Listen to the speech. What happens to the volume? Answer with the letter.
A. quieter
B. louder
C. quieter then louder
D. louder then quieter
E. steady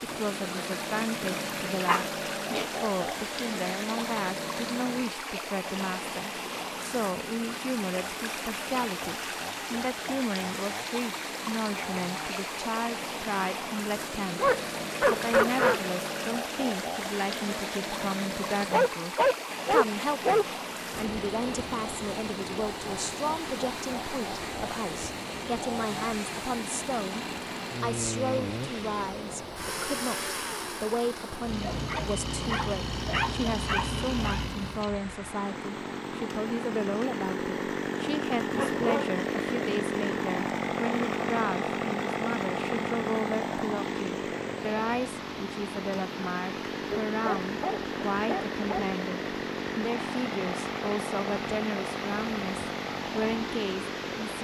E.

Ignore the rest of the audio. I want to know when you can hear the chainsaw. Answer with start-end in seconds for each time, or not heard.
0.0-54.3.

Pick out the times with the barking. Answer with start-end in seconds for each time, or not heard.
1.1-2.7, 14.3-15.8, 18.7-20.4, 31.7-34.4, 38.5-39.1, 46.9-48.9.